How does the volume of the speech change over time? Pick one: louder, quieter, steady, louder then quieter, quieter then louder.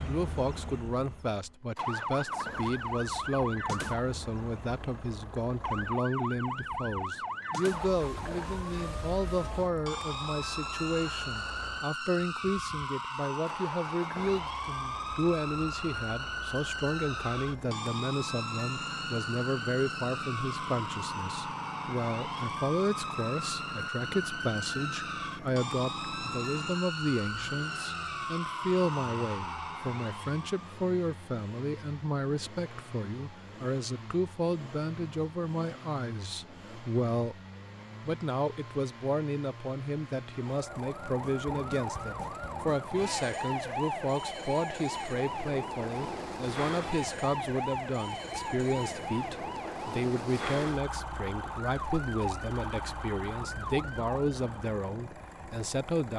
steady.